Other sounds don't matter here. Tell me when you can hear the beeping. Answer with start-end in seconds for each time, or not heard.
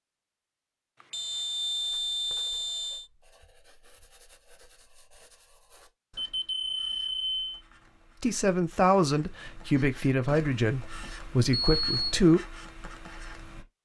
1.0-3.0, 6.2-7.5, 11.5-12.2.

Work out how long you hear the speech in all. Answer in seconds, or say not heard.
4 s.